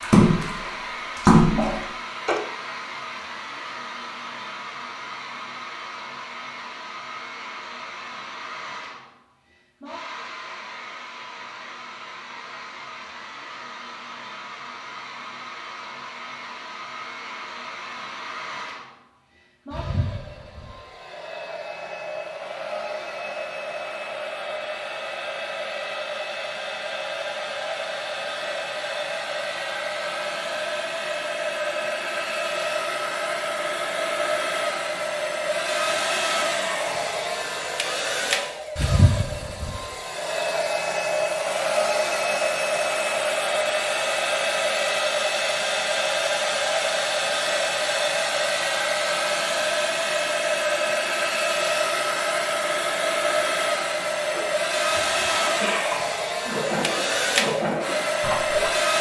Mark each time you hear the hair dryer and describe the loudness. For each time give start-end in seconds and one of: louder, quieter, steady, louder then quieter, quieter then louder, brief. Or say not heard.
0.0-58.9 louder.